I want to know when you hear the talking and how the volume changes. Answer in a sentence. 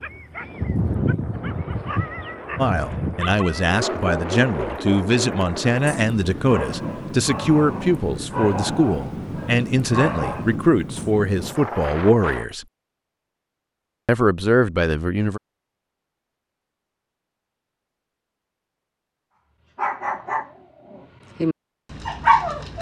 You can hear the talking from 2.5 to 12.7 s, at a steady volume; and briefly from 14.1 to 15.4 s.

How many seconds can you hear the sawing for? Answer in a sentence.
The sawing can't be heard in this clip.